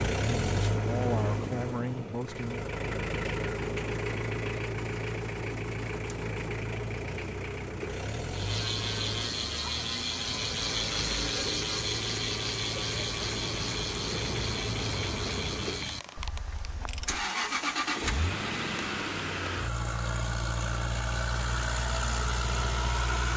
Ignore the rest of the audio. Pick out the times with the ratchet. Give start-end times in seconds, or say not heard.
8.3-17.2.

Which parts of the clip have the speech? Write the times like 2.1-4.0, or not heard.
0.2-2.7.